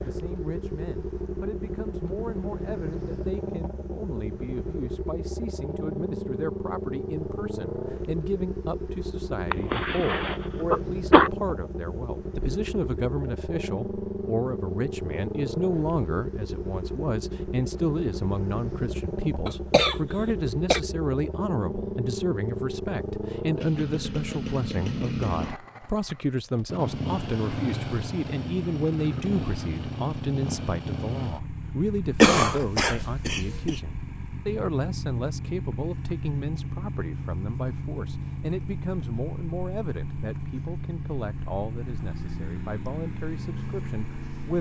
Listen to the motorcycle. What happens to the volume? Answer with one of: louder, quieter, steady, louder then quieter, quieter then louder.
steady.